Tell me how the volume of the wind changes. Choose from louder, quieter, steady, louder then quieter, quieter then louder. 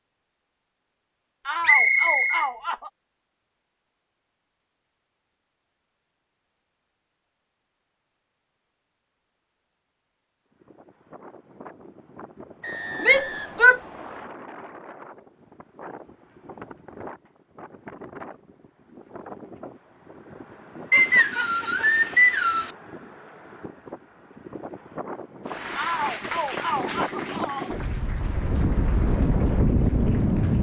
louder.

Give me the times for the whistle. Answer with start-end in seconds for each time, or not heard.
1.6-2.5, 12.6-14.3, 20.9-22.7.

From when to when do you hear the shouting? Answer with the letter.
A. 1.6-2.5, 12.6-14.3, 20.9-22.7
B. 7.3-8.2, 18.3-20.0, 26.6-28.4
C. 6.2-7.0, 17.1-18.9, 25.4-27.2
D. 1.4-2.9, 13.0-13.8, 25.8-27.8
D.